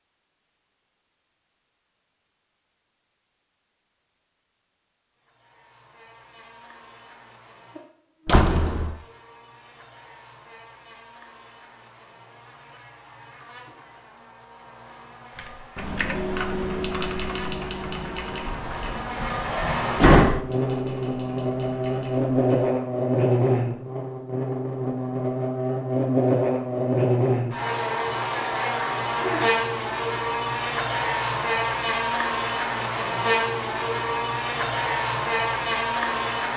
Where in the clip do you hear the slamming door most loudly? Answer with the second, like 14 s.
20 s.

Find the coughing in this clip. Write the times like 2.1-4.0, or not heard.
not heard.